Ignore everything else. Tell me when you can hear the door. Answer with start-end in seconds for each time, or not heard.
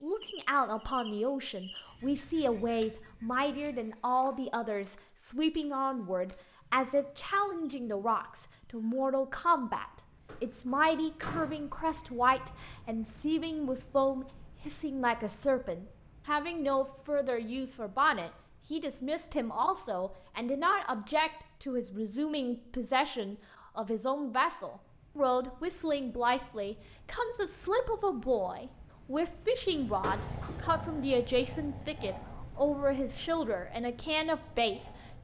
10.2-12.1, 30.0-30.6.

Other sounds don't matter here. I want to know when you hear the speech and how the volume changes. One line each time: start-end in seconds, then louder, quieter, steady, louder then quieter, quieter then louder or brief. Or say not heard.
0.0-35.0 steady.